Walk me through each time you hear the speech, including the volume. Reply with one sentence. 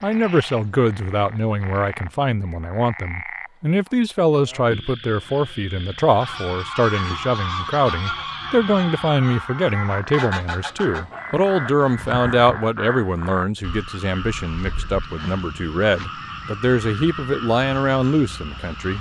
You can hear the speech from 0.0 to 18.9 s, at a steady volume.